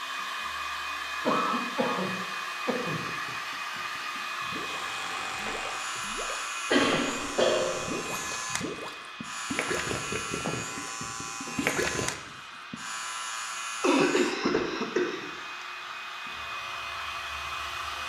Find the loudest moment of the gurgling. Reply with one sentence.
The loudest moment of the gurgling is at 12 seconds.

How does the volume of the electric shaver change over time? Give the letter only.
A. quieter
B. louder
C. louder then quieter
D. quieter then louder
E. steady
A.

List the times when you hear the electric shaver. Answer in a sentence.
You can hear the electric shaver from 4.5 to 18.0 s.